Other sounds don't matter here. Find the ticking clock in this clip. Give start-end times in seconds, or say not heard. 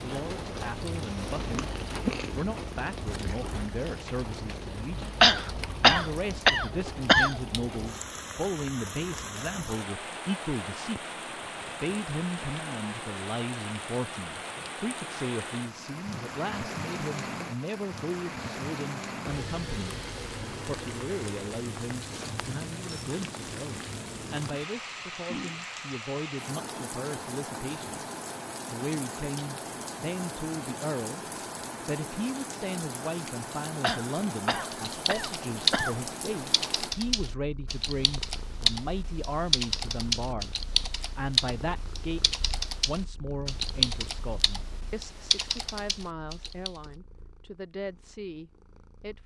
not heard.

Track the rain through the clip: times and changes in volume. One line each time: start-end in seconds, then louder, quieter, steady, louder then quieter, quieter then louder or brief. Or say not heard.
0.0-37.0 steady.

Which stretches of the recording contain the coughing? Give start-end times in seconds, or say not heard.
5.2-7.3, 33.8-36.0.